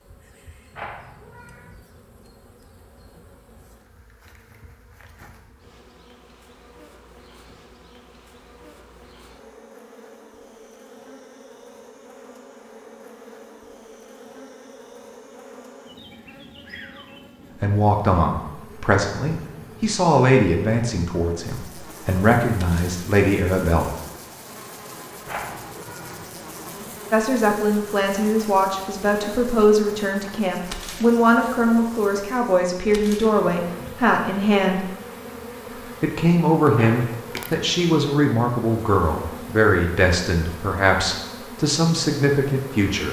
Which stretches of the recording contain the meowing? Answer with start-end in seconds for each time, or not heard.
0.7-1.8, 25.2-26.2, 36.8-37.5.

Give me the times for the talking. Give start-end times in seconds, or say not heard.
17.6-23.9, 27.1-34.9, 36.0-43.0.